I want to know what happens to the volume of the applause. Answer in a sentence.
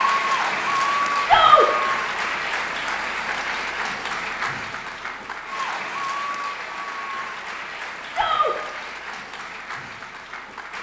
The volume of the applause goes down.